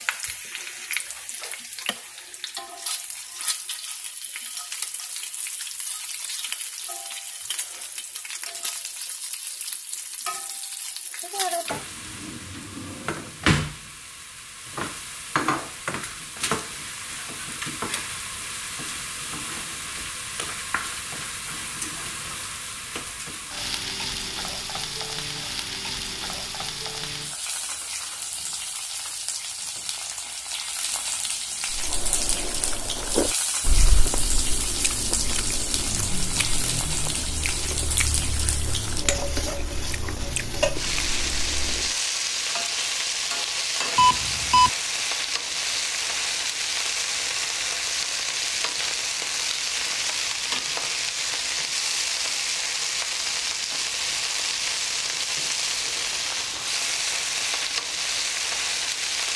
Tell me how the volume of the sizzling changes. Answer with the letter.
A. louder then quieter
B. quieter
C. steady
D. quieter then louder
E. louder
E.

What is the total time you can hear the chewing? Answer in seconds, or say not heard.
10 s.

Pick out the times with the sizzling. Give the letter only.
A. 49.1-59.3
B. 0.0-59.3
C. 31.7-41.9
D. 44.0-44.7
B.